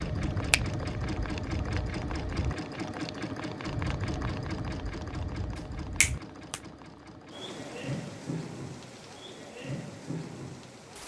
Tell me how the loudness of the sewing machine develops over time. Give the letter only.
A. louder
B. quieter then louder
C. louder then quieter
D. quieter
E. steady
D.